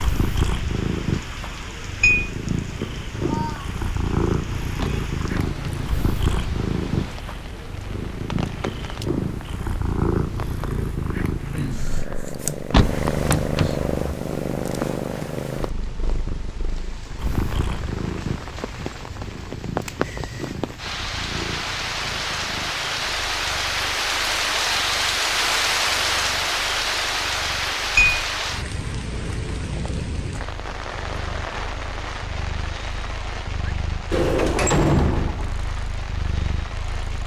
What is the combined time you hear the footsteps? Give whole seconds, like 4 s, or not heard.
not heard.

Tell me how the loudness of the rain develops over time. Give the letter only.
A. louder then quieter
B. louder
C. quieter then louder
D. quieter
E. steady
A.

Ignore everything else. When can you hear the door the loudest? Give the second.
35 s.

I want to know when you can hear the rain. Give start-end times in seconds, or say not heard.
0.0-37.2.